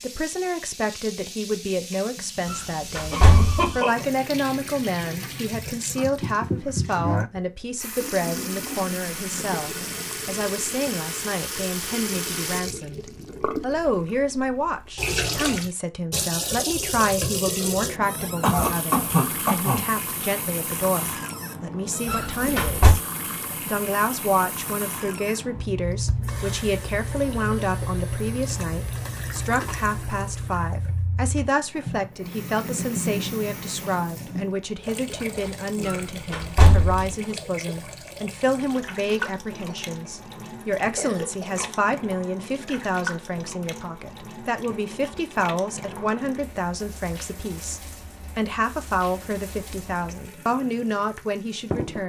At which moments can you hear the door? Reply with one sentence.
The door can be heard from 2.5 to 3.8 s, from 22.1 to 23.0 s and from 35.9 to 37.1 s.